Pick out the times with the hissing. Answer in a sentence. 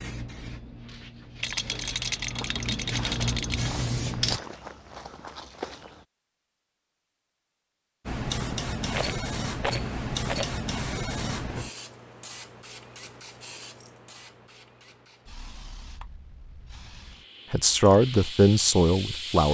The hissing can be heard from 0.0 to 4.4 s and from 8.1 to 19.4 s.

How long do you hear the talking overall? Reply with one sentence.
You can hear the talking for 2 seconds altogether.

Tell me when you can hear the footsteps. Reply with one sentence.
You can hear the footsteps from 2.4 to 6.0 s.